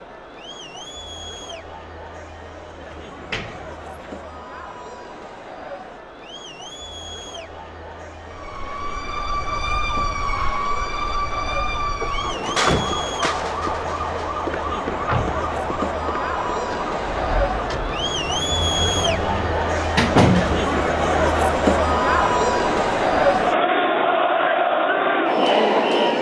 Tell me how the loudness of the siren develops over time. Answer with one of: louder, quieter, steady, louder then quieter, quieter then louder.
quieter.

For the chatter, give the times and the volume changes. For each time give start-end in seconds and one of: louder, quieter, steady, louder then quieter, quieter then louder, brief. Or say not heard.
0.0-26.1 louder.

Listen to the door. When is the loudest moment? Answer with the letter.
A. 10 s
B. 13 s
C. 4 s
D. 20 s
D.